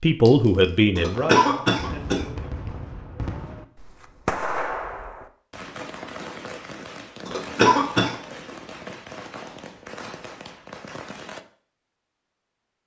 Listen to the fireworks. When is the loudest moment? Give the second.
4 s.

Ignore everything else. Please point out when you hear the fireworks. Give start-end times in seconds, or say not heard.
1.1-11.4.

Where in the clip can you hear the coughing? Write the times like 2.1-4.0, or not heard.
0.9-2.2, 7.2-8.2.